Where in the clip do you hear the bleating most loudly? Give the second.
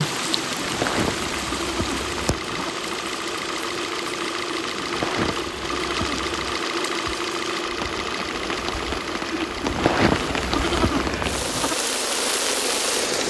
10 s.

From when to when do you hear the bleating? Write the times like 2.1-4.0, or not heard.
0.5-2.8, 4.7-6.6, 9.3-11.8.